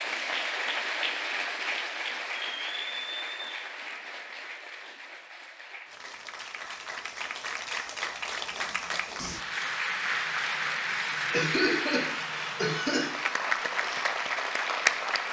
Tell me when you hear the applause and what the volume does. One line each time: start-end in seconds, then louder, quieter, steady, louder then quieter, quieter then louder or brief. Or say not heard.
0.0-15.2 quieter then louder.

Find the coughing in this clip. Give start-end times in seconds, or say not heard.
11.3-13.2.